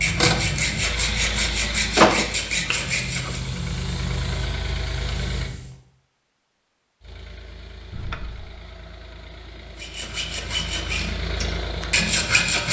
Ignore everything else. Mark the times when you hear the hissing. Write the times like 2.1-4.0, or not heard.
2.5-5.8.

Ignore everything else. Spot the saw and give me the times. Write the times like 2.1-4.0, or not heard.
0.0-3.4, 9.8-12.6.